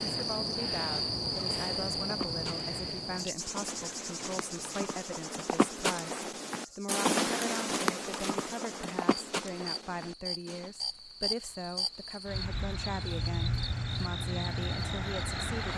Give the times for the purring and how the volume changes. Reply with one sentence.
The purring can't be heard in this clip.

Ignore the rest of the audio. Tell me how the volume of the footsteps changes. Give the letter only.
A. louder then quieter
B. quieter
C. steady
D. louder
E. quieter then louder
A.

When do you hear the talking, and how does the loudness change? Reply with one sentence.
You can hear the talking from 0.0 to 15.7 s, at a steady volume.